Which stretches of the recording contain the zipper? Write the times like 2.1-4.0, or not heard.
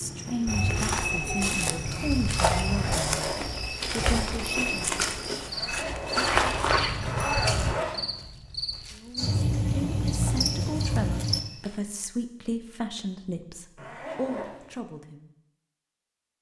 2.6-3.6, 5.5-8.1, 13.8-14.7.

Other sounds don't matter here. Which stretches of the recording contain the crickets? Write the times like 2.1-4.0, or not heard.
0.0-11.4.